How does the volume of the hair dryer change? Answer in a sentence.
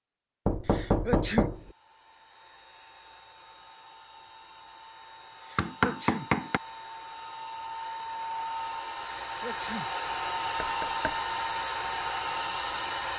The volume of the hair dryer goes up.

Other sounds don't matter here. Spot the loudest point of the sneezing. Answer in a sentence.
The volume of the sneezing peaks at 1 second.